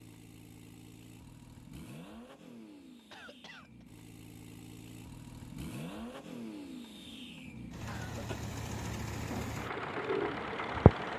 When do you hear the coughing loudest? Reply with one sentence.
The loudest moment of the coughing is at 8 seconds.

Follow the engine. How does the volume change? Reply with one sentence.
The volume of the engine goes up.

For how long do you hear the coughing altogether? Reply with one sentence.
You can hear the coughing for 2 seconds altogether.